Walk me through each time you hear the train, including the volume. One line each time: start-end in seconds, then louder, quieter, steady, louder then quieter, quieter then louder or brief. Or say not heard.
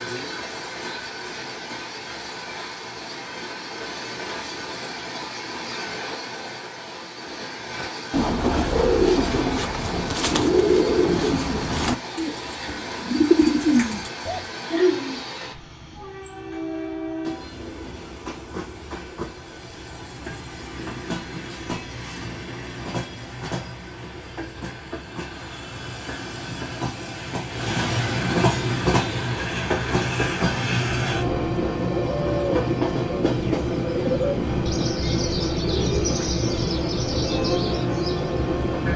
0.0-38.9 louder.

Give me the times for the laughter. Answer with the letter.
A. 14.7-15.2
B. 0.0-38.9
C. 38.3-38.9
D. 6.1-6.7
A.